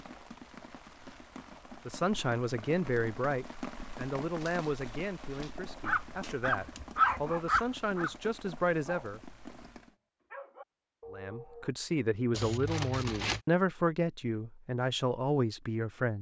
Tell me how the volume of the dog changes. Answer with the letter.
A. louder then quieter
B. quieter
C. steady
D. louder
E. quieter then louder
E.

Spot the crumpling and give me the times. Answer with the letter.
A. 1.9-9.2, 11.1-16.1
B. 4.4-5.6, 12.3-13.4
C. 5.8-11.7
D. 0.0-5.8
B.